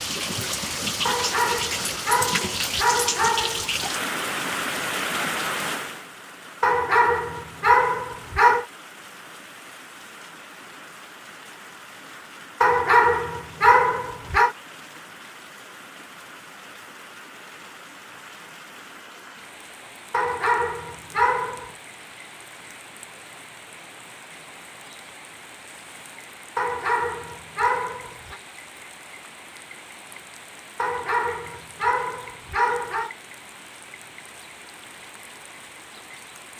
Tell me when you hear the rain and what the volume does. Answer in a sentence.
You can hear the rain from 0.0 to 36.5 s, getting quieter.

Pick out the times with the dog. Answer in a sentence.
The dog can be heard from 1.1 to 3.9 s, from 6.6 to 8.7 s, from 12.6 to 14.6 s, from 20.1 to 21.7 s, from 26.6 to 28.4 s and from 30.8 to 33.1 s.